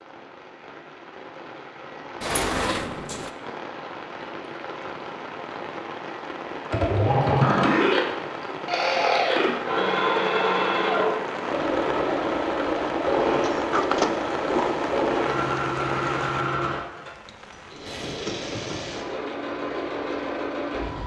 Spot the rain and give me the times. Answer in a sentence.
The rain can be heard from 0.0 to 18.2 s.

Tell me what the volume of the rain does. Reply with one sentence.
The volume of the rain goes up.